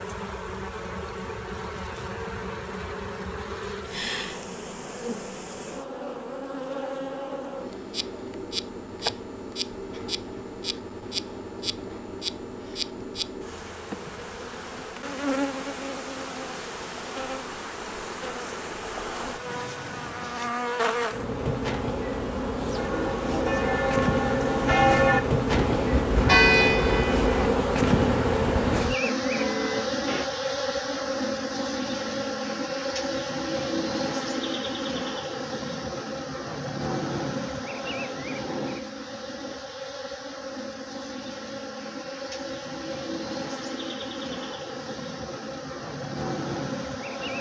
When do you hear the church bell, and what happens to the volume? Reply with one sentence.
The church bell can be heard from 22.8 to 30.2 s, getting louder then quieter.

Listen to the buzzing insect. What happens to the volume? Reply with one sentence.
The loudness of the buzzing insect goes up, then down.